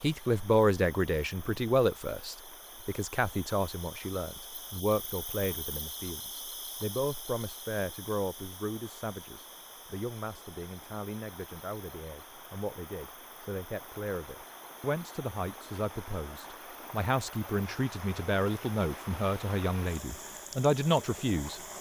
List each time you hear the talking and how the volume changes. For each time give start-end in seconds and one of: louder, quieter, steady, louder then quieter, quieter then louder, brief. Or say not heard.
0.0-21.6 quieter then louder.